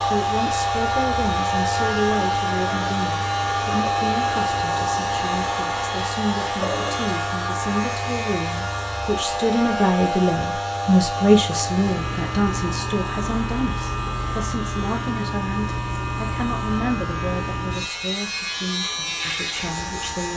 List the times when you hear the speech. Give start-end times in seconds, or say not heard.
0.1-20.3.